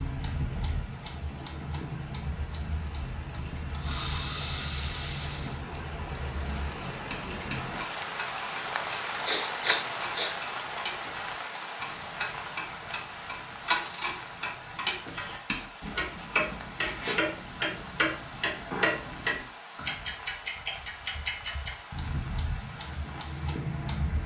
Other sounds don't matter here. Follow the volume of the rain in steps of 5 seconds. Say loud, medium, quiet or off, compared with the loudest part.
medium, loud, loud, medium, medium.